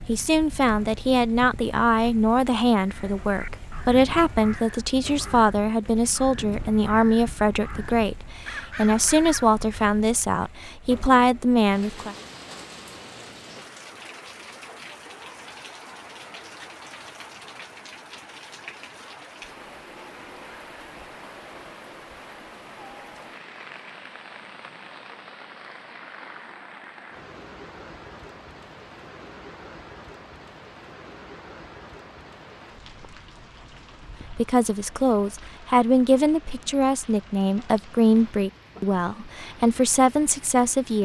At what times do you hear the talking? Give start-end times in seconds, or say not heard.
0.1-12.2, 34.3-41.0.